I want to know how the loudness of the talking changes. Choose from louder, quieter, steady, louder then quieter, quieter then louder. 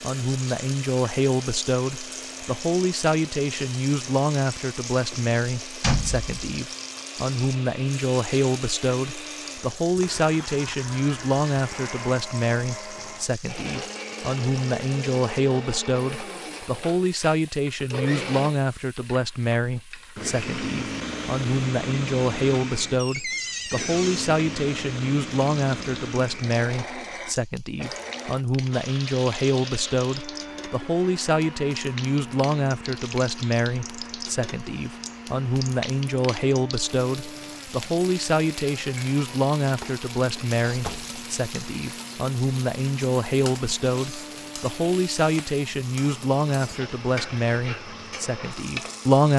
steady.